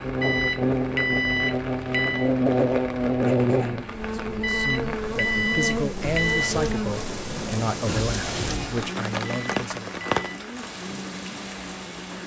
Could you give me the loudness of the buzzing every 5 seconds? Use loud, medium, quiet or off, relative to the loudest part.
loud, medium, quiet.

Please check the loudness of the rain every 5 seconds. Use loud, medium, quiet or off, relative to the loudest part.
medium, loud, loud.